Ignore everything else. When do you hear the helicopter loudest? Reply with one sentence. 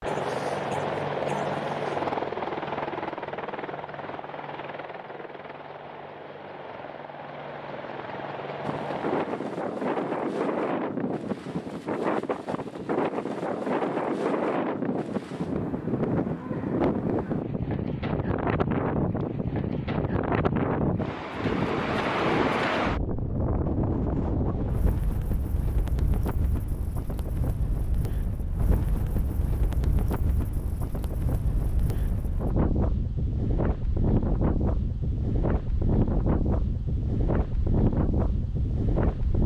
The volume of the helicopter peaks at 2 seconds.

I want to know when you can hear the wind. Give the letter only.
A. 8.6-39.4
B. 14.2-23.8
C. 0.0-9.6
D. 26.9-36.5
A.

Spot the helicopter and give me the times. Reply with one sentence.
You can hear the helicopter from 0.0 to 9.6 s.